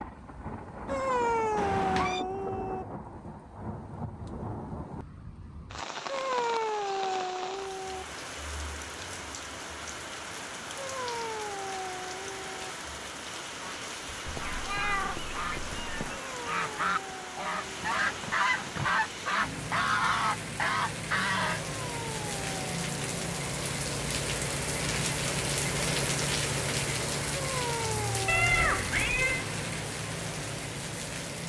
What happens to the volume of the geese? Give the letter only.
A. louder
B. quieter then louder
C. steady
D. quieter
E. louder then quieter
A.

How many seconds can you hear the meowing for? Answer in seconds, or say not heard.
4 s.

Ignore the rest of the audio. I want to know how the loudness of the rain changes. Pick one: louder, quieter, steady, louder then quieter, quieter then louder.
louder.